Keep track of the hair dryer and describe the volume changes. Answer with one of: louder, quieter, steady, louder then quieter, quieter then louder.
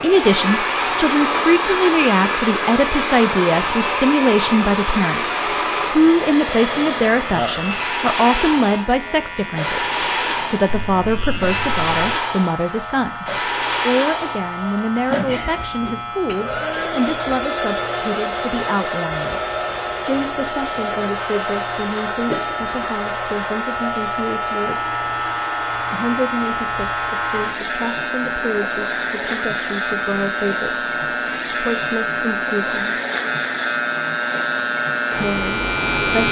quieter.